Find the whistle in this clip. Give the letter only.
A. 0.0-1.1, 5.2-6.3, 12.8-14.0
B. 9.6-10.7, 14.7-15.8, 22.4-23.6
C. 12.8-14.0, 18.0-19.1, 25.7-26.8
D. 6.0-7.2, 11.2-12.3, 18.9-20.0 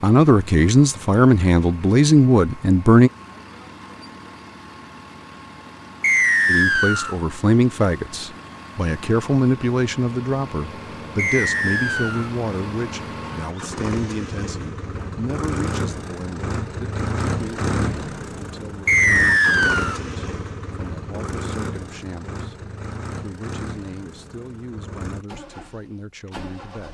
D.